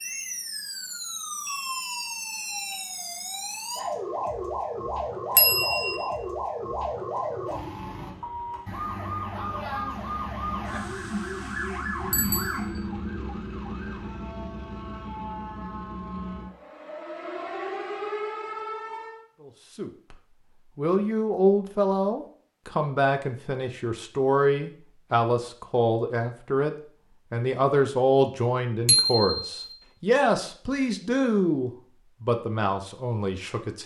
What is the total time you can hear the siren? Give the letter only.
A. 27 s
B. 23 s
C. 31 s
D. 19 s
D.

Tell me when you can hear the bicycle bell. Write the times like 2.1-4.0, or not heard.
5.3-6.0, 12.1-12.6, 28.9-29.8.